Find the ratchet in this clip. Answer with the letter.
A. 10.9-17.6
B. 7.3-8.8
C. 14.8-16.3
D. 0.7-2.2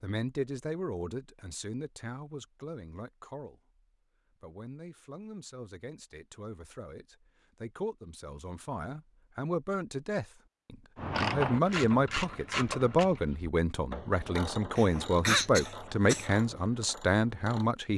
A.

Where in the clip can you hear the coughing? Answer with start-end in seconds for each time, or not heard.
14.8-16.3.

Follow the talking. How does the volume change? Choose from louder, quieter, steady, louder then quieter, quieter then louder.
quieter then louder.